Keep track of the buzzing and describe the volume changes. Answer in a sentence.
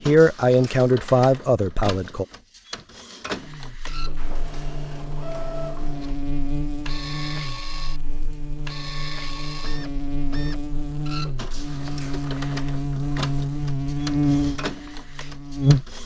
The volume of the buzzing goes up.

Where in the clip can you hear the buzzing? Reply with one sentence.
The buzzing can be heard from 3.4 to 16.0 s.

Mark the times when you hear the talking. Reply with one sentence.
You can hear the talking from 0.1 to 2.2 s.